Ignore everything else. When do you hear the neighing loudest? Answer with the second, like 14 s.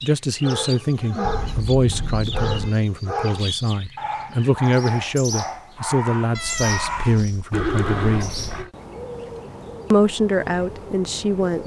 8 s.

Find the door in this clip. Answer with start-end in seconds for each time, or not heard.
not heard.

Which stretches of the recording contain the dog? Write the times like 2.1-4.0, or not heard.
0.4-7.7.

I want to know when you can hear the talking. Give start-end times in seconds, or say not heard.
0.0-8.4, 9.9-11.6.